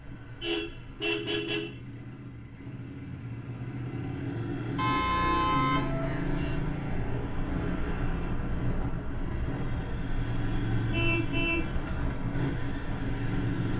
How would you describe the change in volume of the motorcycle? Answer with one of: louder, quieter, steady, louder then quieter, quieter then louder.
louder.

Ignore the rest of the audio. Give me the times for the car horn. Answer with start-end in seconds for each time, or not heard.
0.0-1.8, 4.8-6.6, 10.9-11.7.